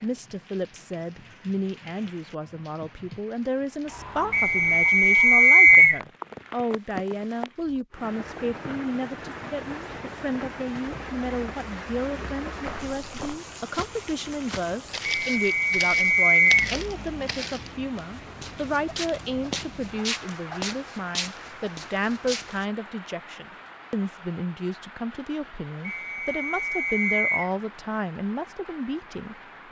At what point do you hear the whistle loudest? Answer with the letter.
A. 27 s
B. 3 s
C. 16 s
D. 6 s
D.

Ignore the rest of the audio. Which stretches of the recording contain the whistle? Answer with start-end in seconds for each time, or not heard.
4.3-6.0, 15.2-16.7, 25.9-27.5.